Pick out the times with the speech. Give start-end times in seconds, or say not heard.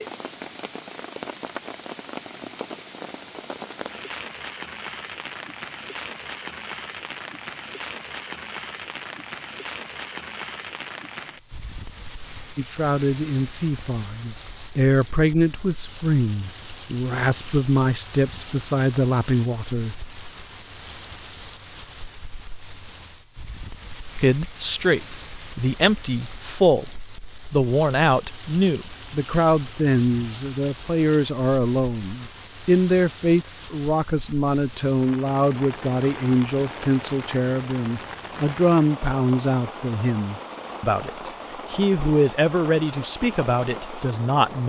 12.6-19.9, 24.1-44.6.